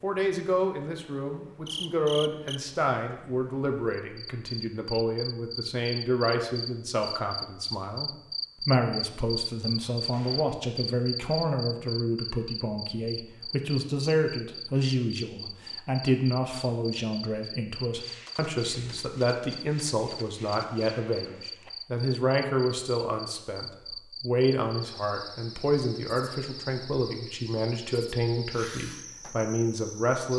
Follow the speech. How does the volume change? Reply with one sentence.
The volume of the speech stays about the same.